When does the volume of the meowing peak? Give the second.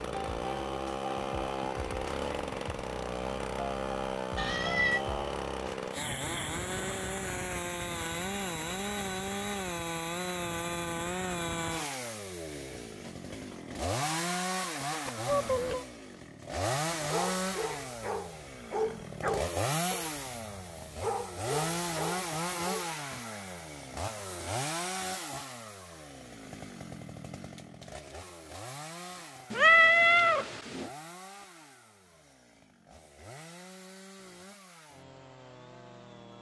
30 s.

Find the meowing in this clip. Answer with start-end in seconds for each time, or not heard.
4.3-5.0, 15.1-15.8, 29.5-30.9.